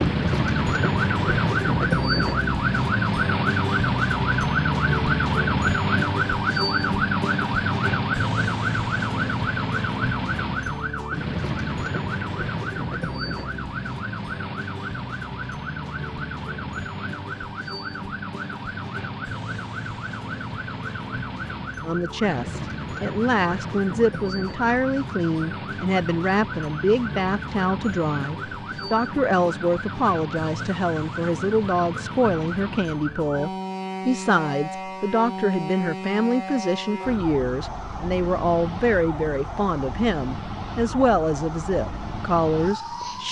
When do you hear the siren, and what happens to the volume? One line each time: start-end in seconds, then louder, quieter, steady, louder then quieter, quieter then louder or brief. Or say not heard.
0.0-43.2 quieter.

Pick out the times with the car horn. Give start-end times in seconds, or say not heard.
not heard.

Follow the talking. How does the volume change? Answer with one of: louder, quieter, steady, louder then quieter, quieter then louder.
steady.